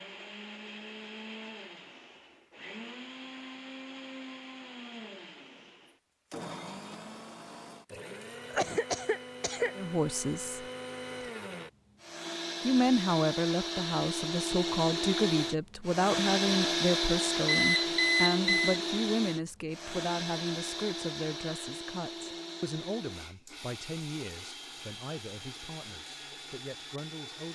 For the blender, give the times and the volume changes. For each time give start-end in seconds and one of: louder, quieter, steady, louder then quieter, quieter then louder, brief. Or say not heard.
0.0-27.5 louder then quieter.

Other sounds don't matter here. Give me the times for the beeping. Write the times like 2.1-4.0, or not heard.
17.4-18.8.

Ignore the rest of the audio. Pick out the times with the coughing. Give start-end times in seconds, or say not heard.
8.5-9.8.